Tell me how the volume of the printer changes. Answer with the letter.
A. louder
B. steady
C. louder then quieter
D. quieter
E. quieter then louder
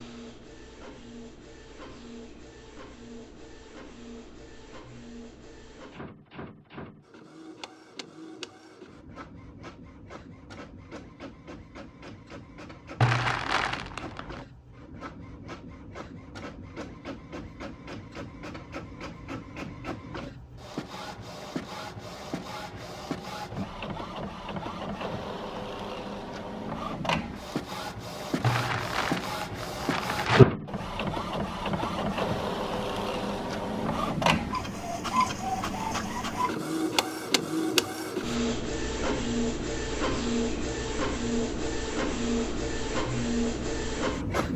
A.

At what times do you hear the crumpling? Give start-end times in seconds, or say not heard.
13.0-14.4, 28.4-30.4.